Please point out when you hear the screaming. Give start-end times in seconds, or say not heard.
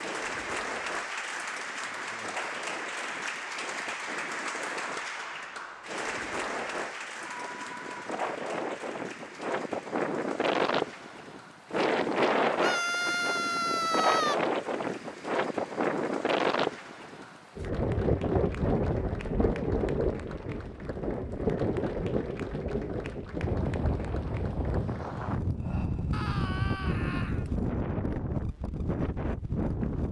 7.2-8.0, 12.6-14.3, 26.1-27.4.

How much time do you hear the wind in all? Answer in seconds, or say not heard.
30 s.